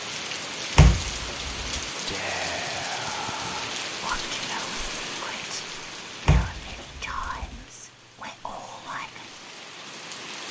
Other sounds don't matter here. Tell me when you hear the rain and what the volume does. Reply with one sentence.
You can hear the rain from 0.0 to 10.4 s, getting quieter.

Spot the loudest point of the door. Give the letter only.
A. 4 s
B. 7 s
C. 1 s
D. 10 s
C.